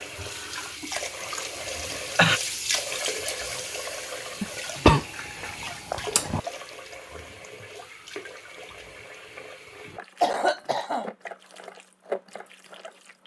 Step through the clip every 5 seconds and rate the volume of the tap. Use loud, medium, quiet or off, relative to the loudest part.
loud, medium, medium.